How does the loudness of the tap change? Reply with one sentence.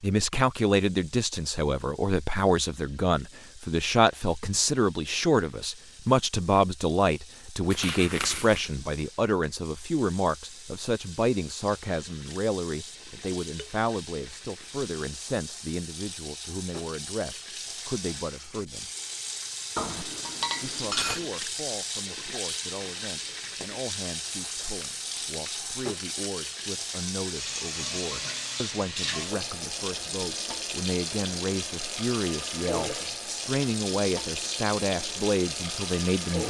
The loudness of the tap goes up.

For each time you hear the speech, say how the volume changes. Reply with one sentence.
You can hear the speech from 0.0 to 18.9 s, getting quieter; and from 20.6 to 36.4 s, getting louder.